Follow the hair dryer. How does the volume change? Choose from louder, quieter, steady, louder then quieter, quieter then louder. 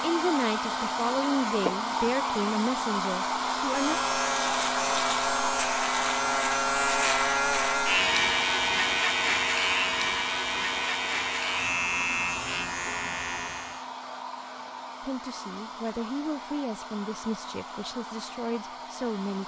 quieter.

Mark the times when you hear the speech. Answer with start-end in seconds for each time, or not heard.
0.0-4.0, 15.0-19.4.